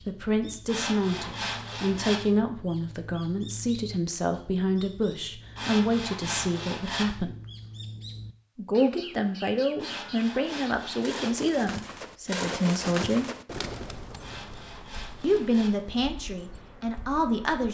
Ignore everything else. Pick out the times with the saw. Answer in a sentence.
The saw can be heard from 0.7 to 2.2 s, from 5.5 to 7.2 s, from 9.8 to 11.3 s and from 14.2 to 15.8 s.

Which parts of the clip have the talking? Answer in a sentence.
The talking can be heard from 0.1 to 7.3 s, from 8.6 to 13.2 s and from 15.2 to 17.6 s.